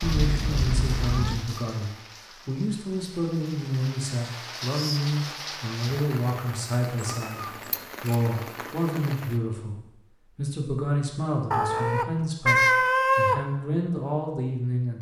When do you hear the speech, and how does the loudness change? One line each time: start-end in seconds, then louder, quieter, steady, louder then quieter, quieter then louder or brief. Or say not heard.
0.0-14.9 steady.